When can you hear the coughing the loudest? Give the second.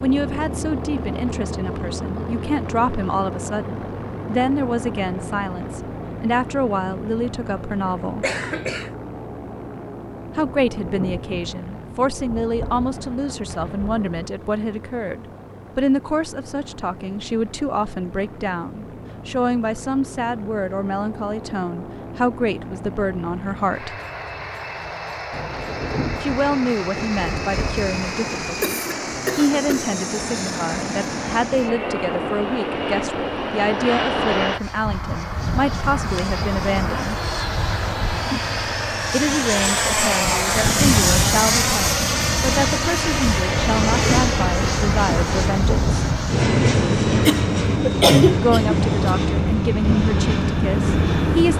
48 s.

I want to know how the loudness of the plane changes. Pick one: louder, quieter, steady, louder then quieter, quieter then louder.
quieter then louder.